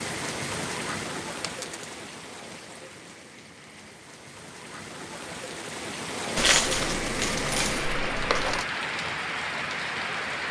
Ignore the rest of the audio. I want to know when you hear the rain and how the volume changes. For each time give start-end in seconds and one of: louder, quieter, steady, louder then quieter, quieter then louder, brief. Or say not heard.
0.0-10.4 quieter then louder.